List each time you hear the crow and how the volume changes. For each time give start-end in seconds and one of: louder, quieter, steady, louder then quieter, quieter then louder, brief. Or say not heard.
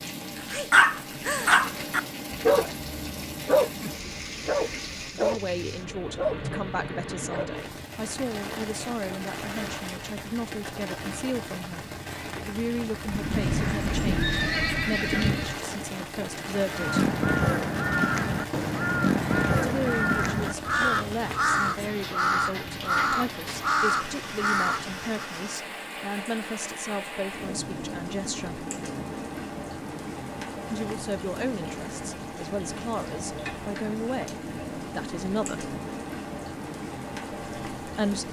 16.7-25.3 steady.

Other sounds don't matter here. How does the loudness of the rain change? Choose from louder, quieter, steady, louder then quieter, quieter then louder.
steady.